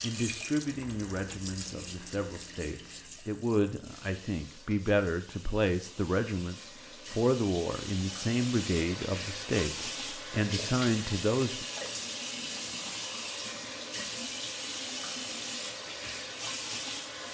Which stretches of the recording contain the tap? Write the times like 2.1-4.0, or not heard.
0.0-17.2.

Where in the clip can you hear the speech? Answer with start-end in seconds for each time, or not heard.
0.0-11.7.